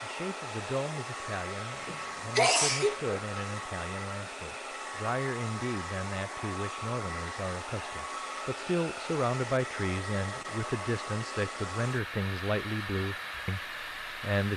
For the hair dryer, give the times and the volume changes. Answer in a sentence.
The hair dryer can be heard from 0.0 to 14.5 s, at a steady volume.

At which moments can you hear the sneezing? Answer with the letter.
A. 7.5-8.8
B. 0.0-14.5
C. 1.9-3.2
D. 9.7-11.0
C.